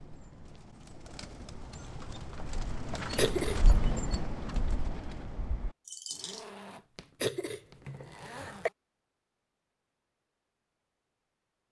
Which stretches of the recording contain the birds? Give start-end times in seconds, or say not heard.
0.0-6.5.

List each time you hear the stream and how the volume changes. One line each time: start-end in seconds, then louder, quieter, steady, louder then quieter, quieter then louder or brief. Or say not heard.
not heard.